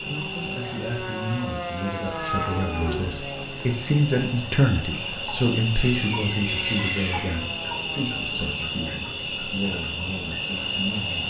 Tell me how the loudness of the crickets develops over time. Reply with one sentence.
The loudness of the crickets goes up.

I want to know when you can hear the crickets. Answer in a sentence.
The crickets can be heard from 0.0 to 11.2 s.